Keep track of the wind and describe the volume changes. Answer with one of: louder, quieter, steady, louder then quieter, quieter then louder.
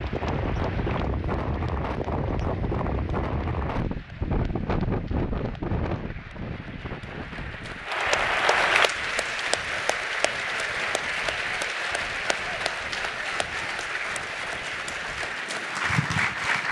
quieter.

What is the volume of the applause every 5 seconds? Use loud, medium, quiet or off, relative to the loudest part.
quiet, loud, loud, loud.